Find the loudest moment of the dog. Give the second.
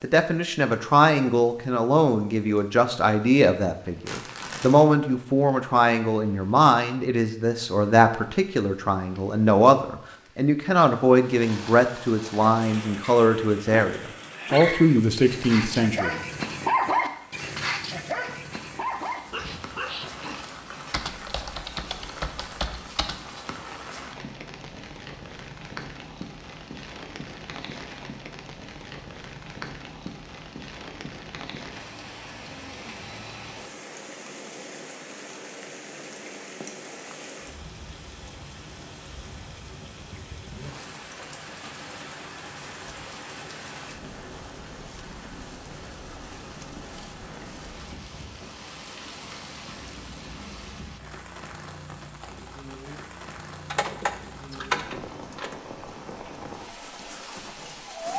17 s.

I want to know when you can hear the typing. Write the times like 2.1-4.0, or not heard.
20.9-23.2, 53.7-55.5.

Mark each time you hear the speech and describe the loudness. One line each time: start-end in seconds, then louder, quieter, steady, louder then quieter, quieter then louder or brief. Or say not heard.
0.0-16.2 steady.